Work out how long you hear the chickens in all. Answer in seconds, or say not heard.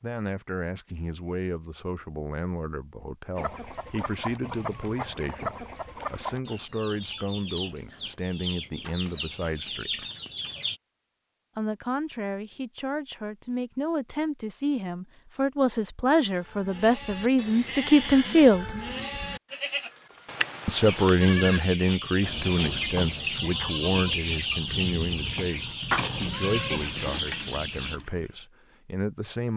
15 s.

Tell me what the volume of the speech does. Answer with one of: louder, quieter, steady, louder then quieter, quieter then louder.
louder then quieter.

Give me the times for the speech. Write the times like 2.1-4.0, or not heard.
0.0-10.1, 11.6-18.7, 20.6-29.5.